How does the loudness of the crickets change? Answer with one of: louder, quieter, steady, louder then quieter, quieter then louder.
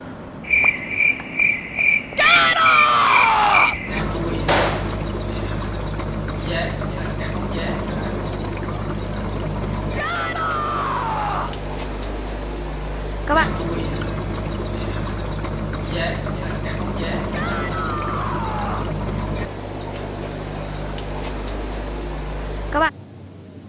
steady.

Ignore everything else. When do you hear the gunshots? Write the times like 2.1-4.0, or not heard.
4.5-5.0.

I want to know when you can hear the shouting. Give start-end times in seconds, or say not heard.
2.1-3.8, 9.9-11.6, 17.3-18.9.